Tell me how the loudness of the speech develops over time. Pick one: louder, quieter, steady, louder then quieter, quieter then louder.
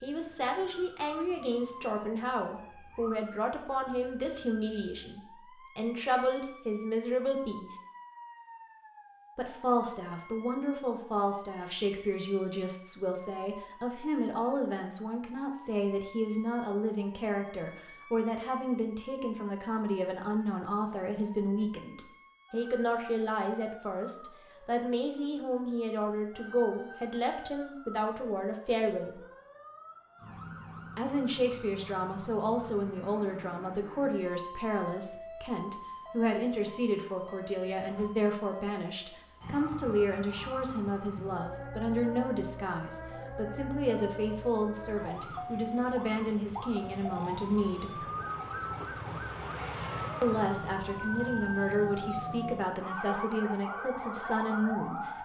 steady.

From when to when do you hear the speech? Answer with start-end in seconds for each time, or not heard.
0.0-7.8, 9.3-29.2, 30.9-48.1, 50.2-55.2.